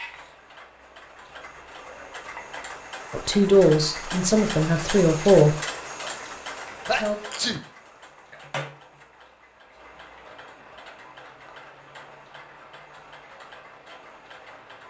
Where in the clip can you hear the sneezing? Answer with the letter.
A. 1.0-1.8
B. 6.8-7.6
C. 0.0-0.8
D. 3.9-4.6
B.